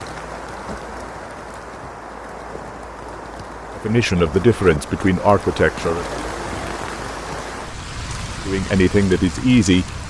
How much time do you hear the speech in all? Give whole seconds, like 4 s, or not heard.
4 s.